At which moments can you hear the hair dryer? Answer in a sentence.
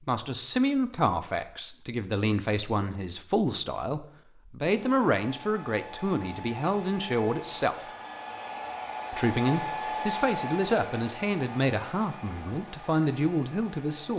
The hair dryer can be heard from 4.6 to 14.1 s.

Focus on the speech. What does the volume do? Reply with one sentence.
The loudness of the speech stays about the same.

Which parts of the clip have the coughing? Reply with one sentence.
The coughing can't be heard in this clip.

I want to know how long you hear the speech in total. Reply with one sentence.
The speech can be heard for 13 seconds in total.